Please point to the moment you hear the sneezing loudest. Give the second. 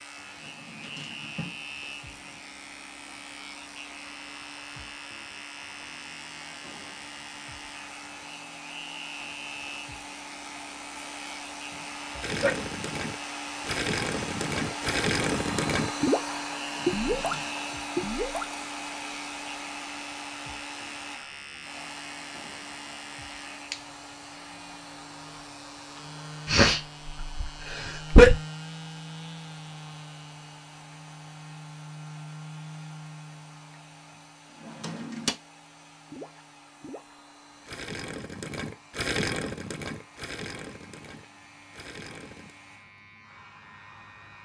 28 s.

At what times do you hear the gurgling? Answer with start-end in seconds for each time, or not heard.
12.2-18.6, 36.0-42.5.